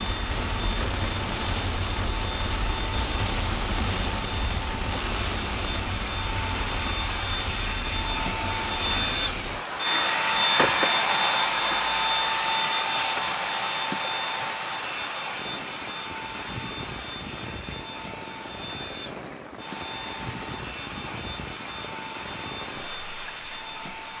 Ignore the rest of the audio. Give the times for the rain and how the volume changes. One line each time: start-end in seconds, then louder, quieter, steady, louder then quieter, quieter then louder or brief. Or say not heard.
0.0-24.1 quieter.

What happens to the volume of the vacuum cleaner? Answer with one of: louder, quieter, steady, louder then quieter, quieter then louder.
louder then quieter.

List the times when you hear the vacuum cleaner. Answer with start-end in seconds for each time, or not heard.
0.0-24.1.